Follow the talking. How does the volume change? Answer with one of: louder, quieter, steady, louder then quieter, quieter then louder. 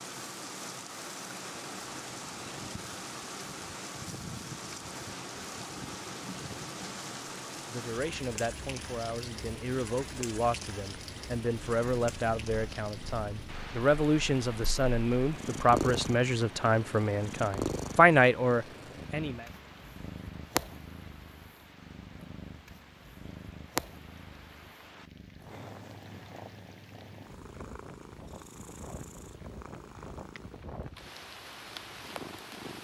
louder.